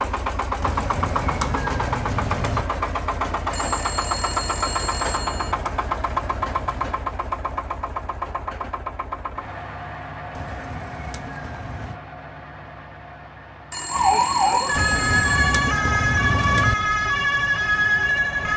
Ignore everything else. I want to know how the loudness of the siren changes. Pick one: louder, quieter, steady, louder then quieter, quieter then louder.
steady.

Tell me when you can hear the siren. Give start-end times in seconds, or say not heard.
13.8-18.5.